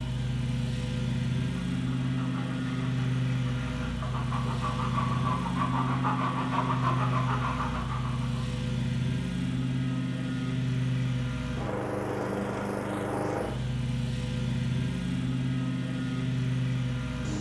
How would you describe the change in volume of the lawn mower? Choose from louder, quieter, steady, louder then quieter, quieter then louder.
steady.